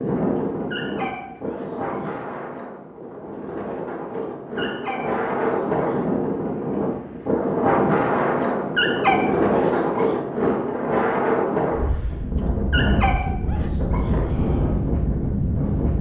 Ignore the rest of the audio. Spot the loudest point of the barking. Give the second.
9 s.